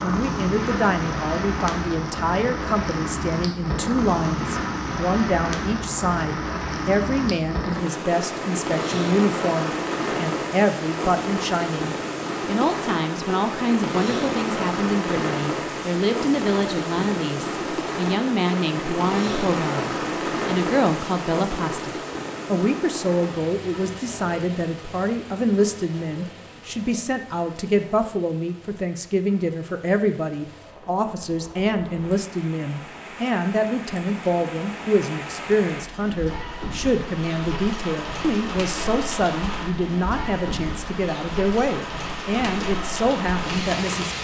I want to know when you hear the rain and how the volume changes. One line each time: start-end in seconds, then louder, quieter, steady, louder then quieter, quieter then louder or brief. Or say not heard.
0.0-44.1 quieter then louder.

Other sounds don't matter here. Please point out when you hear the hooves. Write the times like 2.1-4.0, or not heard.
not heard.